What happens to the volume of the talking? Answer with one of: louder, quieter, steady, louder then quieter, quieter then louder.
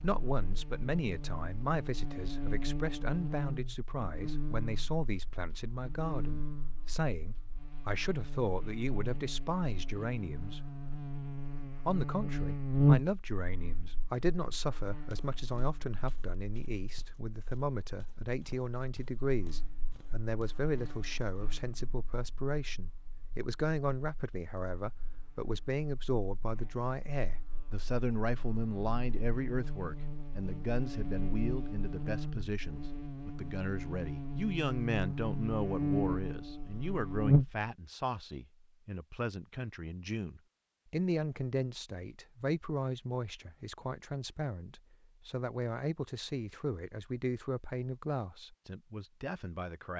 steady.